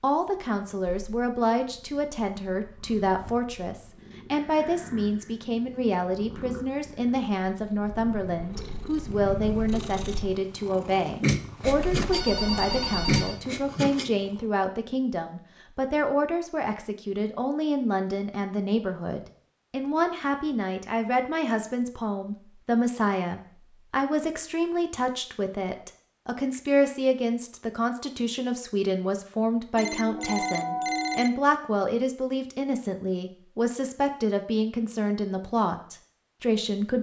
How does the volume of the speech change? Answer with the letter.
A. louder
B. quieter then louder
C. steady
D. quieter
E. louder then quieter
C.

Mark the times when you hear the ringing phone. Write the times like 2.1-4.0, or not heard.
11.6-13.4, 29.8-31.3.